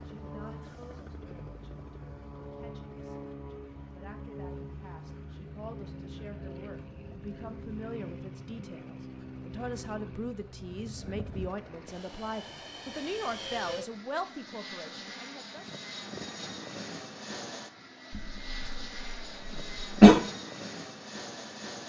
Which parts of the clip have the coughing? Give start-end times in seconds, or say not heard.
18.1-20.1.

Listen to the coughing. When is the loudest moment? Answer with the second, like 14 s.
20 s.